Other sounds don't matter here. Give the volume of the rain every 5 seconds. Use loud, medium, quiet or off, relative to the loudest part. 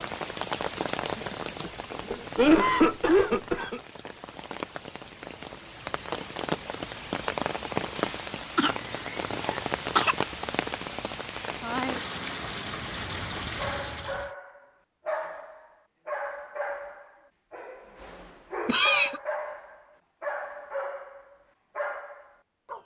loud, loud, loud, off, off.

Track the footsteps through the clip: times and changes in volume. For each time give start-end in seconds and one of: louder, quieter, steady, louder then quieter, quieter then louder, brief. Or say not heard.
not heard.